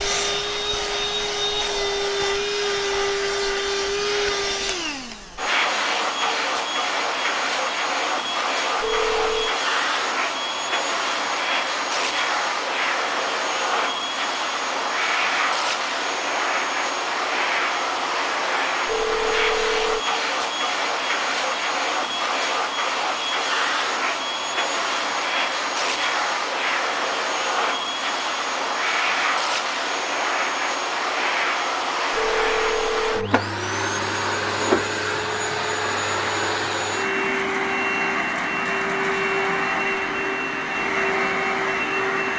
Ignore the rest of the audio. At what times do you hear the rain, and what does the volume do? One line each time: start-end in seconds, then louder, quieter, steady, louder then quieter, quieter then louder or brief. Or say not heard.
not heard.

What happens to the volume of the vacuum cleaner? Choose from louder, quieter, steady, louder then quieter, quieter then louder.
steady.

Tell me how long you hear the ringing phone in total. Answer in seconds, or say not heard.
3 s.